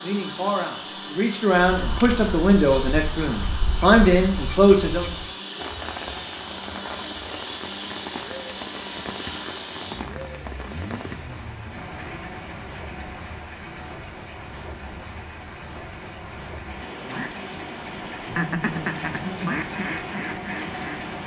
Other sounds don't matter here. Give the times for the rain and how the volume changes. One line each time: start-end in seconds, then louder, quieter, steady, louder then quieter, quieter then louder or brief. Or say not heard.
5.5-21.2 steady.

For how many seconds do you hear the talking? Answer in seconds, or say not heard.
5 s.